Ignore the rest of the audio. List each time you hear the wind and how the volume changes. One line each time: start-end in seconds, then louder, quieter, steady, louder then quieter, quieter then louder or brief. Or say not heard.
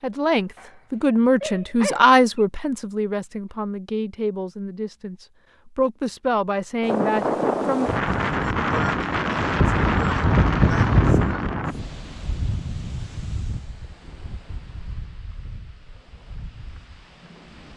6.8-17.7 quieter.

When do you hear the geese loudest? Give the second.
11 s.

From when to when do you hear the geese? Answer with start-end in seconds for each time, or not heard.
9.6-11.4.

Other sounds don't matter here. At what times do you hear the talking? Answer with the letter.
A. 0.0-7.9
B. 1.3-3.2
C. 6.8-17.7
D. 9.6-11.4
A.